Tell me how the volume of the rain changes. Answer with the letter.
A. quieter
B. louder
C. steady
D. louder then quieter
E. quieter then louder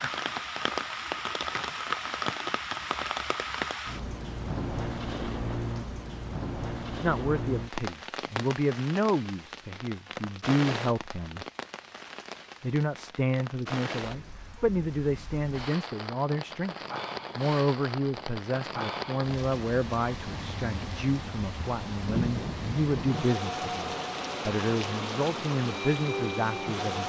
E.